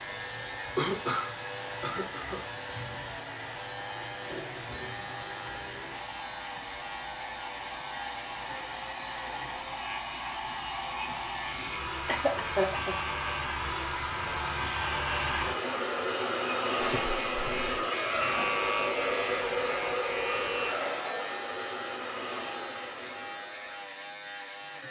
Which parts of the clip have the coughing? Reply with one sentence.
The coughing can be heard from 0.8 to 2.5 s, from 12.1 to 12.9 s and from 16.8 to 17.7 s.